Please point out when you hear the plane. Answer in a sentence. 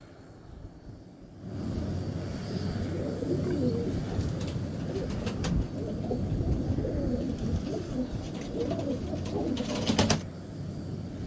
You can hear the plane from 0.0 to 11.2 s.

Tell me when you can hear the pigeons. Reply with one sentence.
The pigeons can be heard from 2.5 to 10.2 s.